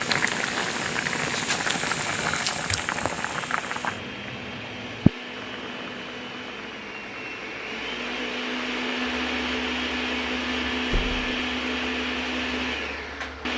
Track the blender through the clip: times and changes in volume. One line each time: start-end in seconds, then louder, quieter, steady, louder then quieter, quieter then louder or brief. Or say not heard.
0.1-13.5 louder.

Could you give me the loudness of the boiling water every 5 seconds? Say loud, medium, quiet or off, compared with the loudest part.
loud, loud, quiet.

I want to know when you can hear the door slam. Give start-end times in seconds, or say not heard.
10.9-11.4.